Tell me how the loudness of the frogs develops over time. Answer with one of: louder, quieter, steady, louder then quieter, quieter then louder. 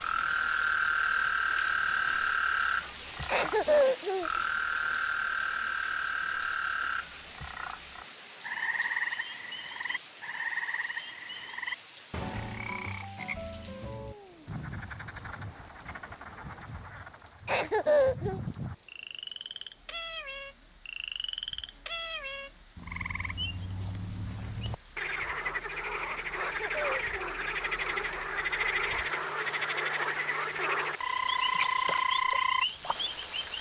quieter then louder.